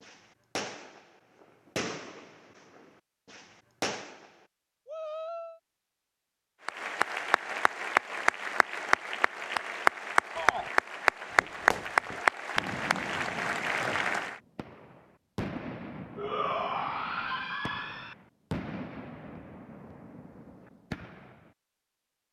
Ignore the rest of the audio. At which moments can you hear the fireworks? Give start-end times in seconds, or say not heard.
0.0-4.5, 11.3-21.5.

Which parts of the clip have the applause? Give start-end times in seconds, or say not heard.
6.7-14.4.